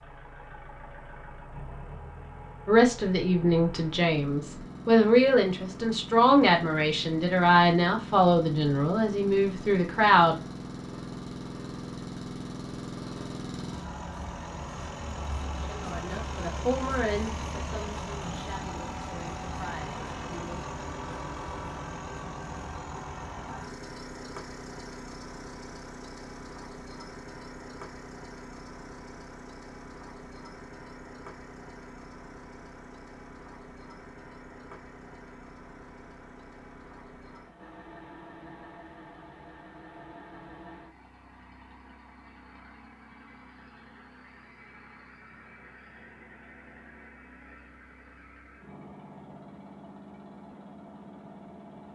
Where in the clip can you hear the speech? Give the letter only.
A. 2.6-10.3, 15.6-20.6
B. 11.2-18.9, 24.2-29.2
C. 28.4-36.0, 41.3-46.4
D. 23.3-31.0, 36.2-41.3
A.